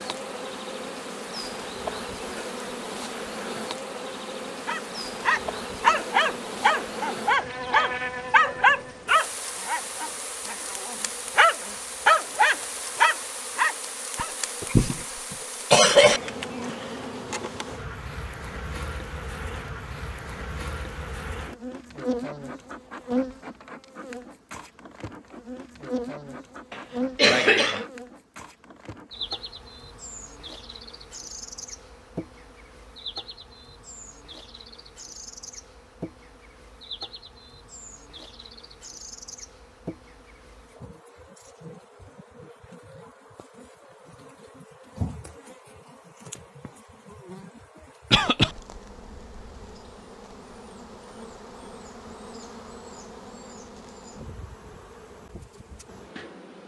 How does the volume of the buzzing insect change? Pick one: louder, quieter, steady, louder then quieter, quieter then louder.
quieter.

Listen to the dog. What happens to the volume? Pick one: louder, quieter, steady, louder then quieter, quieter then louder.
steady.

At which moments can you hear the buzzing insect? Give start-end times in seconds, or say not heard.
0.0-56.6.